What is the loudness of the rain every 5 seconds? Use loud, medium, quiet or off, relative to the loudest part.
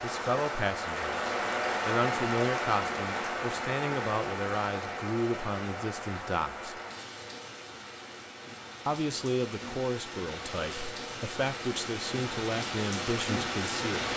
loud, medium, loud.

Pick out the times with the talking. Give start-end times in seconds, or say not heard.
0.0-6.8, 8.8-14.1.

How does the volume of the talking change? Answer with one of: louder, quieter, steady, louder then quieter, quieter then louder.
steady.